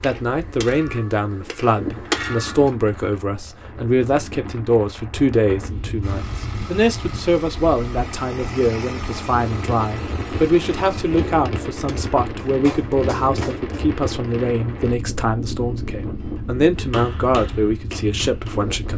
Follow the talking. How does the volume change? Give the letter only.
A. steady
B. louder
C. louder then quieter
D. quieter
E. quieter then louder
A.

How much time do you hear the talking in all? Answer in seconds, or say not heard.
19 s.